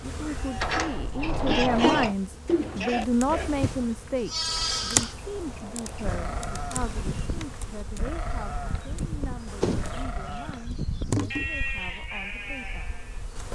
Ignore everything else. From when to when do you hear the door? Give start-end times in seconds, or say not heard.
0.6-2.1, 4.5-6.5, 9.6-11.1.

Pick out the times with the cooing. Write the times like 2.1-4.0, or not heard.
2.5-4.1.